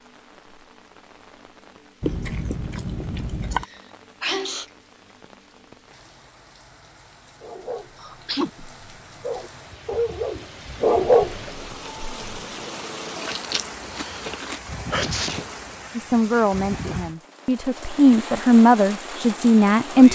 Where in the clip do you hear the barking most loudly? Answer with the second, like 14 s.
11 s.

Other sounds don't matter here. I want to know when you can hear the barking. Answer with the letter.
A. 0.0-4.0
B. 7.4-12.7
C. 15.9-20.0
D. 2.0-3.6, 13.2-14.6
B.